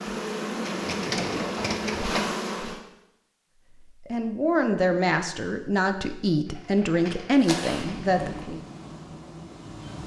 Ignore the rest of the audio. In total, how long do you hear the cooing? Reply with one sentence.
The cooing can be heard for 4 seconds in total.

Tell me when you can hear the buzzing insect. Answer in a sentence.
You can hear the buzzing insect from 0.0 to 2.8 s and from 7.3 to 10.0 s.